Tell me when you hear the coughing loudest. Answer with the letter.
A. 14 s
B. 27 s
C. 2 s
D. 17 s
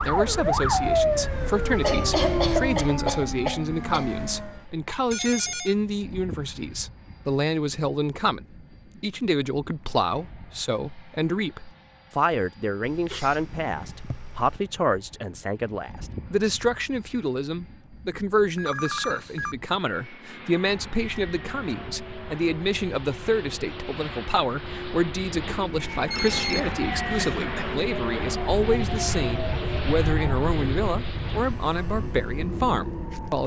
C.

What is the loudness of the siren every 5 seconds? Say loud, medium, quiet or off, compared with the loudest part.
loud, off, off, off, quiet, medium, medium.